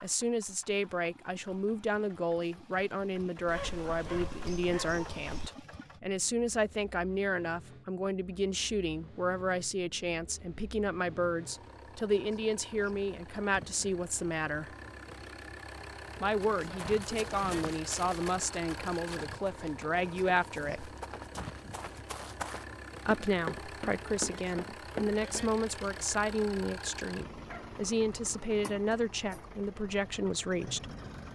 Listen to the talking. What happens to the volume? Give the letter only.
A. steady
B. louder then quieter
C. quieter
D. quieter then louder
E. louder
A.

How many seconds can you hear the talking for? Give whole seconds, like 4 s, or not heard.
27 s.